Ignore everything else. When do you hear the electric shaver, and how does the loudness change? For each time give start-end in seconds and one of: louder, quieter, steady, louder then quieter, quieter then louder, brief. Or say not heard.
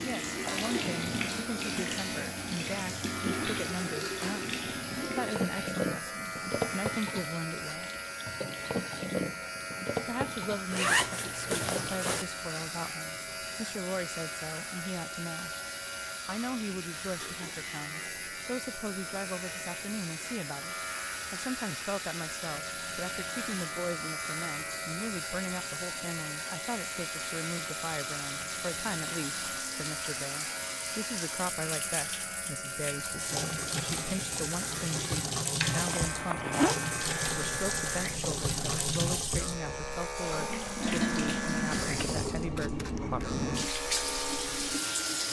0.0-45.2 steady.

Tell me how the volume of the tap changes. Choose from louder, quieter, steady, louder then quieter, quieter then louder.
quieter then louder.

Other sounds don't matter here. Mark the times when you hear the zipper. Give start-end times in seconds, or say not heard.
10.7-12.2, 35.9-36.8.